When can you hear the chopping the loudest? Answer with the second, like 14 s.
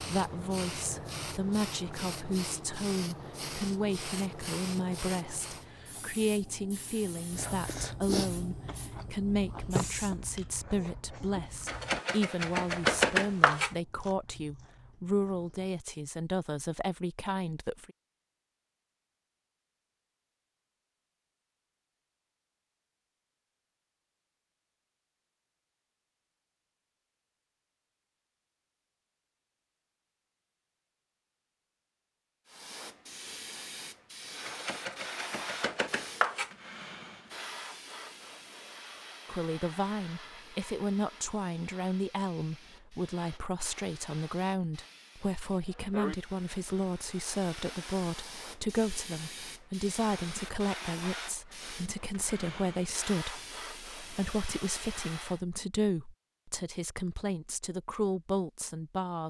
13 s.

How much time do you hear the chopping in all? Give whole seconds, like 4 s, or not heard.
4 s.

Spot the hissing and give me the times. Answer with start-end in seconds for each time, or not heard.
0.0-10.2, 32.5-55.4.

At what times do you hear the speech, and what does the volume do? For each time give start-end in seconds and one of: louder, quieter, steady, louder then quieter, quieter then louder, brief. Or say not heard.
0.0-17.9 steady
39.2-59.2 steady.